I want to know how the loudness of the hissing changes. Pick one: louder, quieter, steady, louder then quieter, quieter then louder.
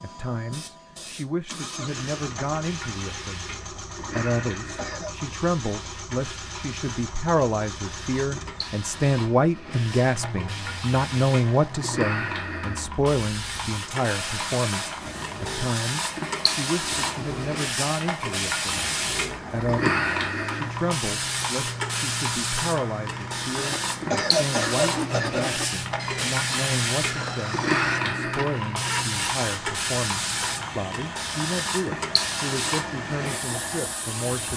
louder.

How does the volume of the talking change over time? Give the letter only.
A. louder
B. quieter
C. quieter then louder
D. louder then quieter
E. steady
D.